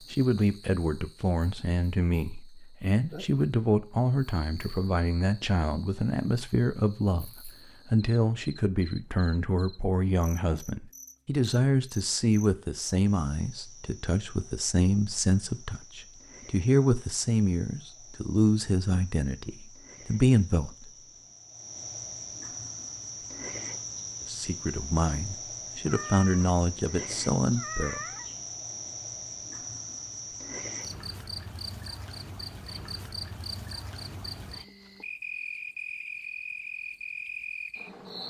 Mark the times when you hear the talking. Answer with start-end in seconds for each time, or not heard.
0.1-20.9, 24.2-28.0.